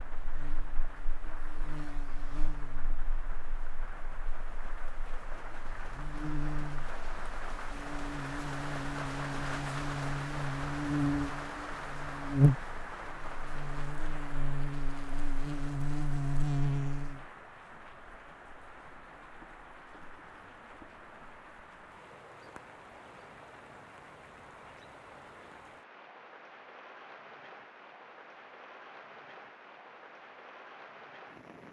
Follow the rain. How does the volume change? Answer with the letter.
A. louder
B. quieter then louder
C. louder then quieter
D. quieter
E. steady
C.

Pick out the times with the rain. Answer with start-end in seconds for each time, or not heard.
0.0-31.6.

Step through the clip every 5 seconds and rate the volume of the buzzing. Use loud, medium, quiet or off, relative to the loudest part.
quiet, medium, loud, loud, off, off, off.